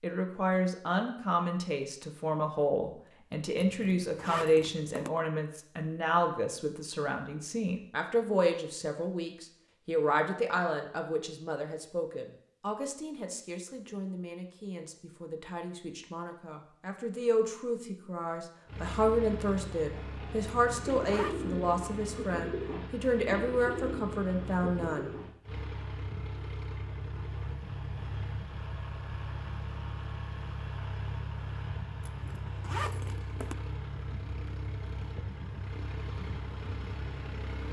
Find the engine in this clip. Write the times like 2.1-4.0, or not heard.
18.6-37.6.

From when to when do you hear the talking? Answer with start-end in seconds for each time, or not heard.
0.0-25.1.